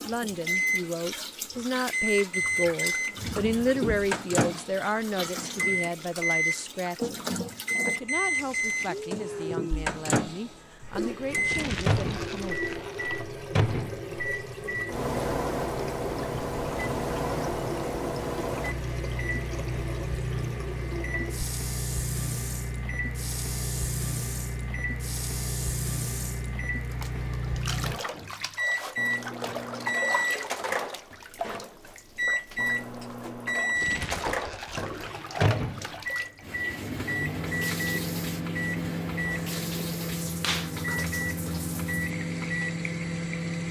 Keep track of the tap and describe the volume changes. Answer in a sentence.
The loudness of the tap stays about the same.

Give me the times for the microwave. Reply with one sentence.
The microwave can be heard from 0.1 to 43.6 s.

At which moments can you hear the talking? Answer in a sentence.
You can hear the talking from 0.0 to 7.2 s and from 7.8 to 12.6 s.